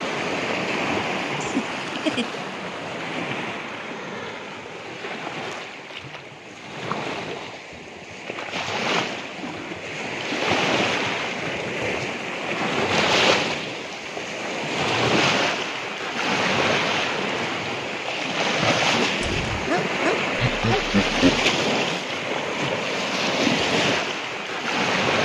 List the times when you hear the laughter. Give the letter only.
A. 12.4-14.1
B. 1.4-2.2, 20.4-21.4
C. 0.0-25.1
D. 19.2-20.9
B.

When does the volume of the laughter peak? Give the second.
21 s.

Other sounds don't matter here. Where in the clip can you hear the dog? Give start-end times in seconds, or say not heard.
19.2-20.9.